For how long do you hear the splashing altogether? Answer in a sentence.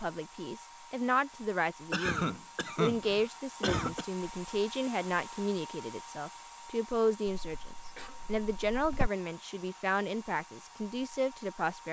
The splashing can't be heard in this clip.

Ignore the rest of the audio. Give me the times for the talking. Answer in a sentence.
You can hear the talking from 0.0 to 11.8 s.